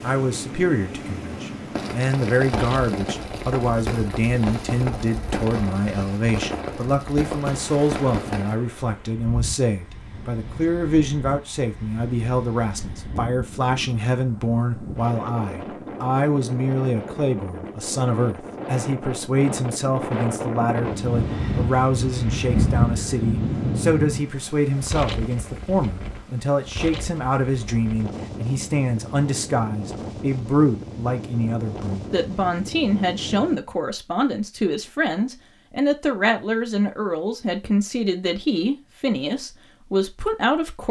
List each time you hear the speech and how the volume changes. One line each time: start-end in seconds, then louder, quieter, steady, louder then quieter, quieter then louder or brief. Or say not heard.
0.0-40.8 steady.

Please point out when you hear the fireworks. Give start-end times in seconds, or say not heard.
1.8-8.6.